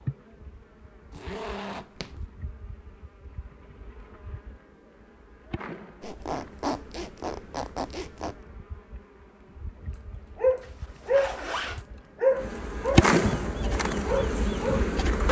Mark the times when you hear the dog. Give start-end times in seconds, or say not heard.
10.3-14.8.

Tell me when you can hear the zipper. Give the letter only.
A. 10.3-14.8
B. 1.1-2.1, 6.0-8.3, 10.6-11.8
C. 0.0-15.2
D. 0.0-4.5
B.